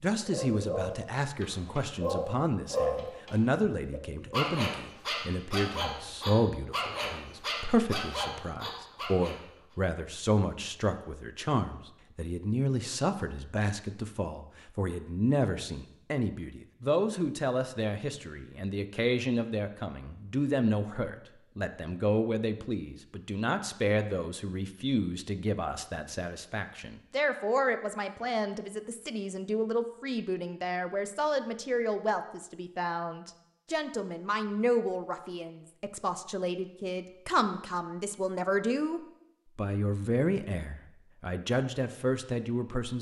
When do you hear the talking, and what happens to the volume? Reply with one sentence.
You can hear the talking from 0.0 to 42.9 s, at a steady volume.